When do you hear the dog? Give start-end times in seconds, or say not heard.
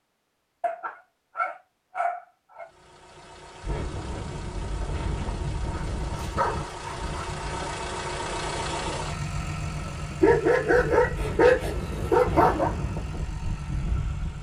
0.6-2.6, 5.7-7.8, 10.2-12.7.